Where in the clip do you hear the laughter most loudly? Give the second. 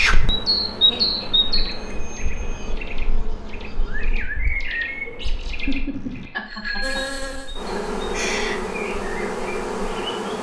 6 s.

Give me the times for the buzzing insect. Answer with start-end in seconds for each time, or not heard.
0.0-4.2, 6.8-10.3.